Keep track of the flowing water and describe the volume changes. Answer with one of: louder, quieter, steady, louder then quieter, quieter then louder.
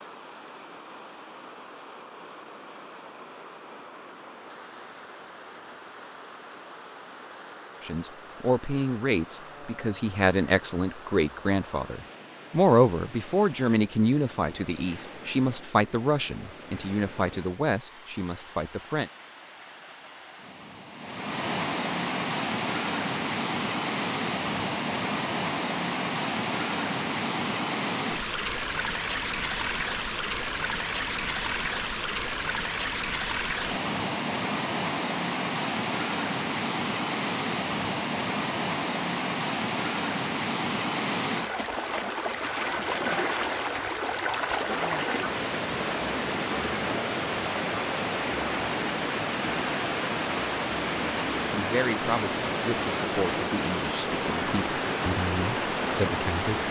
louder.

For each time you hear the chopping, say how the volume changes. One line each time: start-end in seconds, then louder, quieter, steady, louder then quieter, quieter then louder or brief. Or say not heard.
not heard.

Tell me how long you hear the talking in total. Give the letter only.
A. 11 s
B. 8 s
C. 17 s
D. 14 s
C.